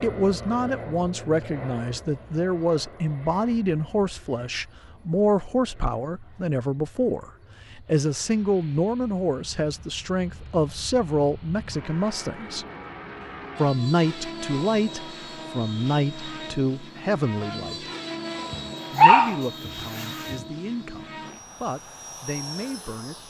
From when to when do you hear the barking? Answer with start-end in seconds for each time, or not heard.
18.5-20.4.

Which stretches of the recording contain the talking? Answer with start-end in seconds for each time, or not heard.
0.0-12.7, 13.6-17.9, 18.9-23.2.